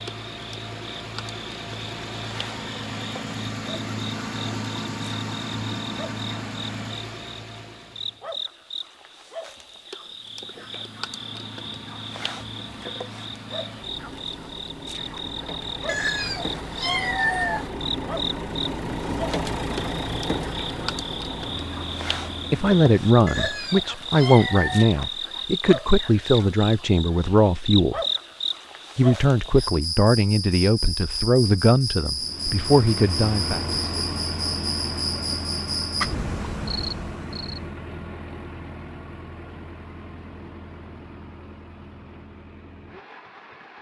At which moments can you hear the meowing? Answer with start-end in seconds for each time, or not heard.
15.8-17.7, 23.2-24.9.